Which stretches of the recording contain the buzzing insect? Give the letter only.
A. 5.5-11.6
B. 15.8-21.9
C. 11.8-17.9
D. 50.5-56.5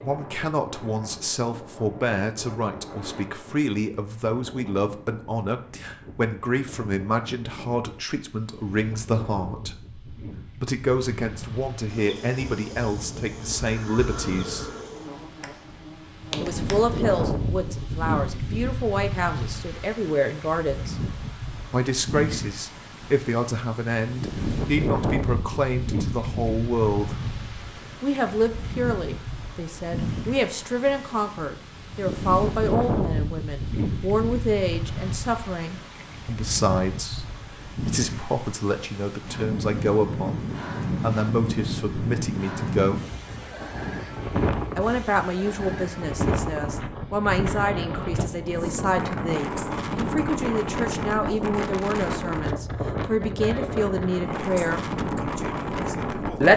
C.